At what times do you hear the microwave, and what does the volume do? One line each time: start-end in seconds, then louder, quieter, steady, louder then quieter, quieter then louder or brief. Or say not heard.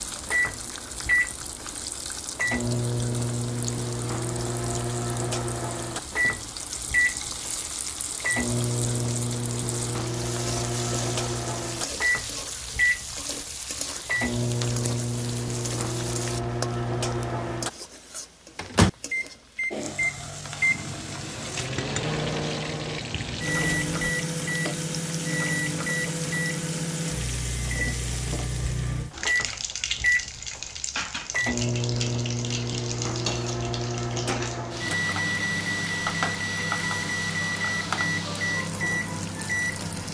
0.0-40.0 steady.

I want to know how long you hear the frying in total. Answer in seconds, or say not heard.
40 s.